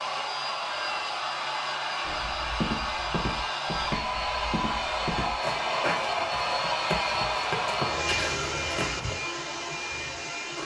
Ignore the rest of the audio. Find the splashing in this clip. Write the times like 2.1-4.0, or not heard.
not heard.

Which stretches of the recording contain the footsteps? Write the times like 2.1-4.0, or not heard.
2.0-9.2.